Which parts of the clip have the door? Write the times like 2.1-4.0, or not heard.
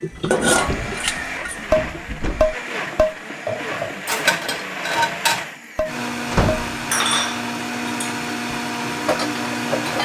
0.1-2.5, 6.3-6.8.